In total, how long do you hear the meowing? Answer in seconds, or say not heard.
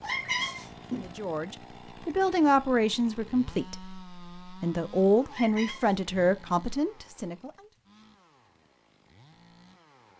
2 s.